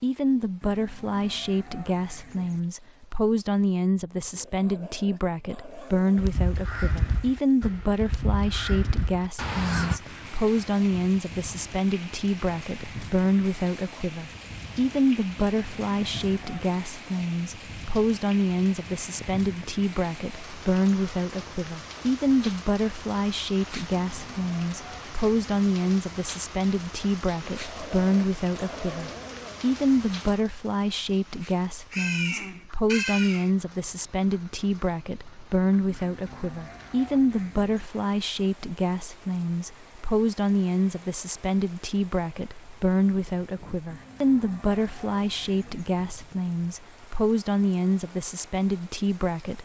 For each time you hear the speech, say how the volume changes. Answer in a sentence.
You can hear the speech from 0.0 to 49.6 s, at a steady volume.